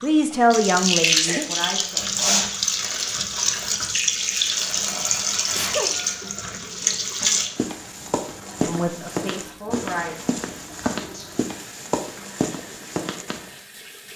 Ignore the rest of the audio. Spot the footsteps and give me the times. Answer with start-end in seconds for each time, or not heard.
7.5-13.5.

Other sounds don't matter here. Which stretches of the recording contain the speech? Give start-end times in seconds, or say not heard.
0.0-2.2, 8.6-10.2.